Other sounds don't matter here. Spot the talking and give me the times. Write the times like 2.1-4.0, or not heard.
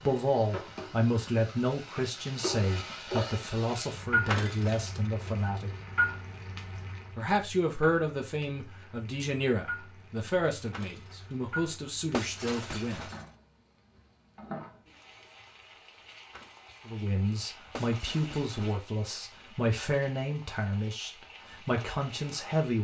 0.0-5.7, 7.1-13.1, 16.9-22.7.